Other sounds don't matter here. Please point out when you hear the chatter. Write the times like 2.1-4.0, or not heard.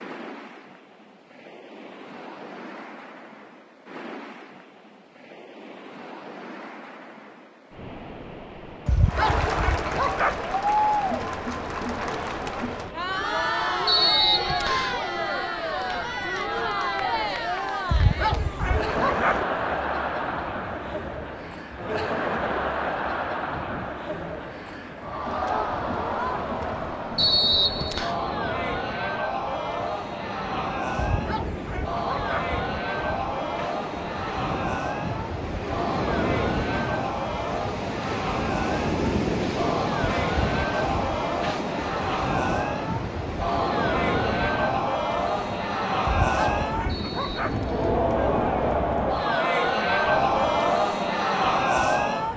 9.1-52.3.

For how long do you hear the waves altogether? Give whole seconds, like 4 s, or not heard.
52 s.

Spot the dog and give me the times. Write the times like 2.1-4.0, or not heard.
8.8-10.4, 17.9-19.4, 30.9-32.5, 46.0-47.6.